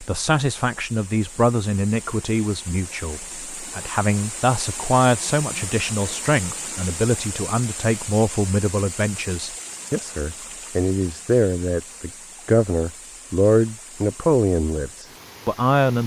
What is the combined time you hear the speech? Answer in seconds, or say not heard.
16 s.